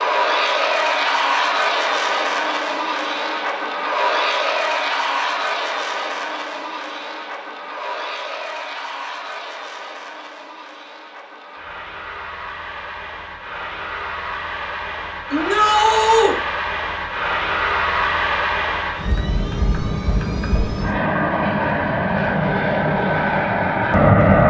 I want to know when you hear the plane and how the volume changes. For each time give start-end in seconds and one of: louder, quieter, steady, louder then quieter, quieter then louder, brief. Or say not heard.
0.0-24.4 quieter then louder.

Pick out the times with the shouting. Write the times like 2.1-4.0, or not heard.
15.3-16.4.